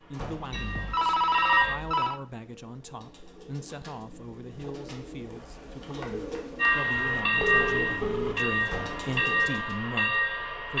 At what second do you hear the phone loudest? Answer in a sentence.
The volume of the phone peaks at 1 second.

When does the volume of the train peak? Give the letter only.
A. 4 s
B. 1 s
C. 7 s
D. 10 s
C.